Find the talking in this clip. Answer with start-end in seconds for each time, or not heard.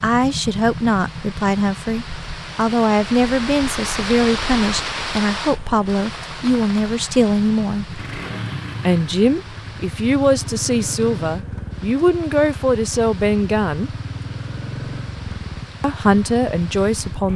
0.0-8.0, 8.8-13.9, 15.8-17.3.